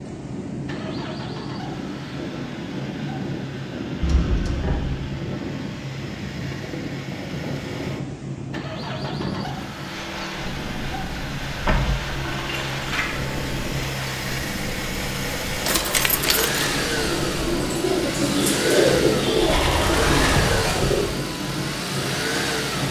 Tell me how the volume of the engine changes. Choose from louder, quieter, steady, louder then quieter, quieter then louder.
louder.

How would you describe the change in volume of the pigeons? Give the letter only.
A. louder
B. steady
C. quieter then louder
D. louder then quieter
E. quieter
A.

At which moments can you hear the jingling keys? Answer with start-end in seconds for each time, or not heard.
4.0-5.0, 11.7-13.2, 15.5-16.6.